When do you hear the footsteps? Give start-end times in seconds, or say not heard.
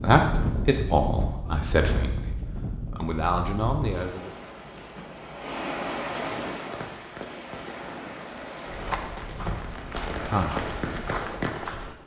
8.7-11.9.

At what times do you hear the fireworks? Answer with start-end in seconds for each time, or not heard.
6.3-11.8.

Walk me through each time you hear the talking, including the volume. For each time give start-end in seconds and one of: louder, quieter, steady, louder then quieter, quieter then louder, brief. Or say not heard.
0.0-4.3 quieter then louder
10.2-10.7 brief.